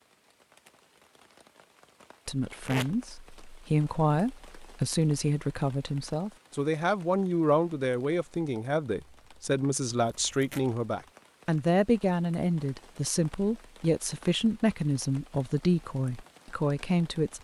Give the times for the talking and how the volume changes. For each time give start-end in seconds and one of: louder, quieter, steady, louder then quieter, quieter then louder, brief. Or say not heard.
2.2-17.3 steady.